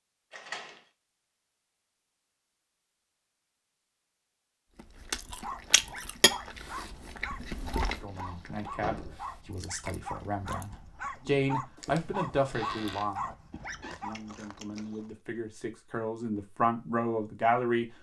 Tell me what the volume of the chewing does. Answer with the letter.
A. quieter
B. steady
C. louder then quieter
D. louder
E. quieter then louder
A.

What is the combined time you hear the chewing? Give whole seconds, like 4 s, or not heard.
10 s.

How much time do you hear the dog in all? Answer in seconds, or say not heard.
9 s.